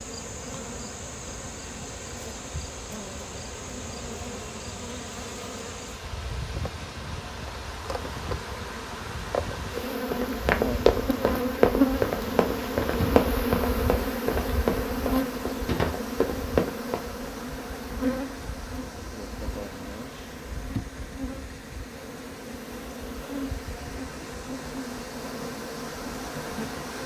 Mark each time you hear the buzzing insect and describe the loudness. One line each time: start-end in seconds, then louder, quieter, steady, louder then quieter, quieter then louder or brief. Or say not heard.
0.0-27.0 louder then quieter.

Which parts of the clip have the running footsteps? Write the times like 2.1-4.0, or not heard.
10.1-17.0.